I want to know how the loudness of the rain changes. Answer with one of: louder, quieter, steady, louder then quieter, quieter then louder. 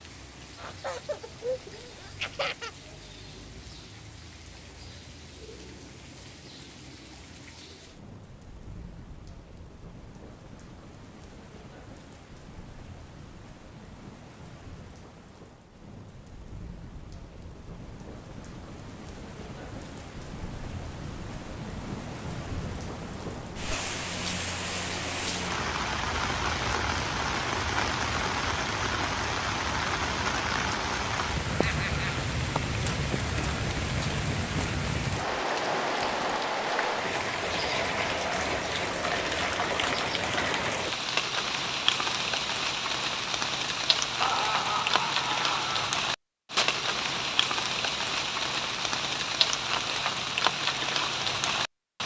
louder.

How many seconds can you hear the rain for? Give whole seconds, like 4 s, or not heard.
52 s.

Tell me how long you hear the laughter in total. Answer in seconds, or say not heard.
5 s.